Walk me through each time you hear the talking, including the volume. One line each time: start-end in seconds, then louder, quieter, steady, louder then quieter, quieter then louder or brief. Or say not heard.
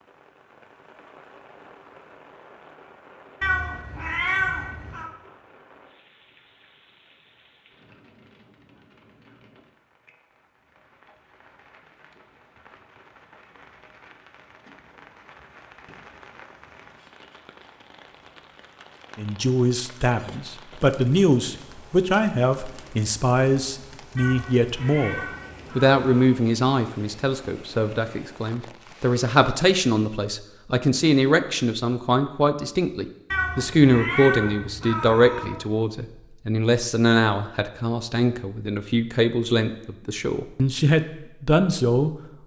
19.1-42.1 steady.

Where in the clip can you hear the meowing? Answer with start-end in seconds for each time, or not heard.
3.4-5.1, 24.1-26.4, 33.3-35.6.